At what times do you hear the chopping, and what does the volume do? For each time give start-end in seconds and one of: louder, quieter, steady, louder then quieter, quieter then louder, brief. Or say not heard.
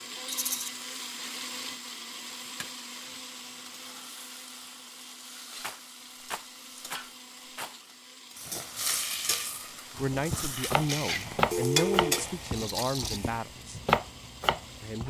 9.9-15.0 quieter then louder.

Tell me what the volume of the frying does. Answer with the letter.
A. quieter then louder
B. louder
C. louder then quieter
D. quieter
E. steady
B.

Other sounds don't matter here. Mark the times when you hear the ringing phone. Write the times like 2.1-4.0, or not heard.
11.5-12.2.